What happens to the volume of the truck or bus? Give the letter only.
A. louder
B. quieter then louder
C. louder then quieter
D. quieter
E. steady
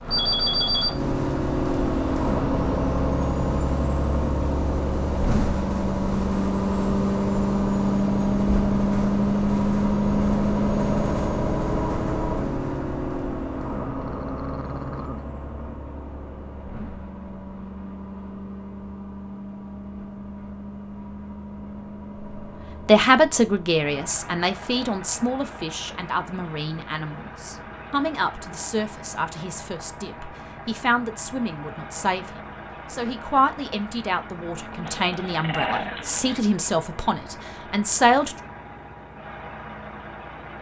D.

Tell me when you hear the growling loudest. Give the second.
36 s.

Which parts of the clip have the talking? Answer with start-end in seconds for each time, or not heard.
22.9-38.4.